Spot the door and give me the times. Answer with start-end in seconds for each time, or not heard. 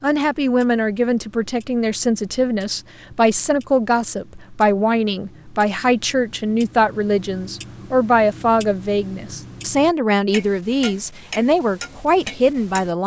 not heard.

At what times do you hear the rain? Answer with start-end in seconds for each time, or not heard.
not heard.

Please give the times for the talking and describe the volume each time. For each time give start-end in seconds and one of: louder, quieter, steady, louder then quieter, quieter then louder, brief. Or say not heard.
0.0-13.0 steady.